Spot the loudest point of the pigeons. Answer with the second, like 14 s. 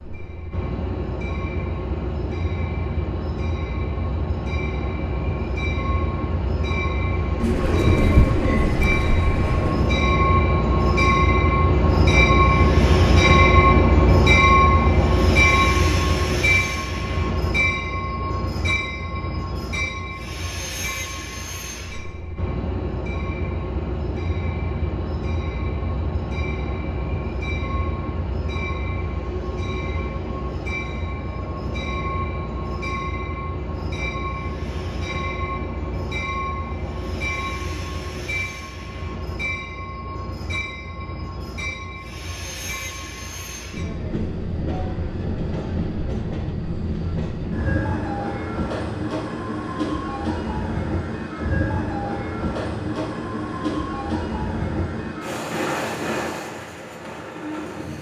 8 s.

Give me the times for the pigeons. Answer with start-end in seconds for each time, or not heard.
7.4-9.9.